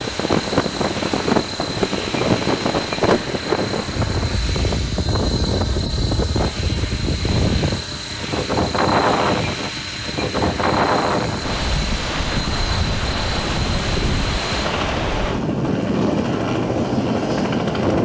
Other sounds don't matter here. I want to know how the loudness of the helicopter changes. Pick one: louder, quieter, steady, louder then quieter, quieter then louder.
steady.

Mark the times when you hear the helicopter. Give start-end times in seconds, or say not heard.
0.0-17.9.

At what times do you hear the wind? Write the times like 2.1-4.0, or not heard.
0.0-17.9.